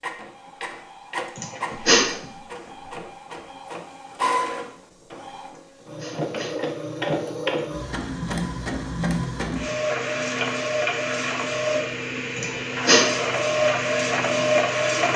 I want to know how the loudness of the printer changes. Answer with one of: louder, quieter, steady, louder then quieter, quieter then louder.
louder.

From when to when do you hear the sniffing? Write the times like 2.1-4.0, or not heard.
1.4-2.1, 5.5-6.5, 12.3-13.1.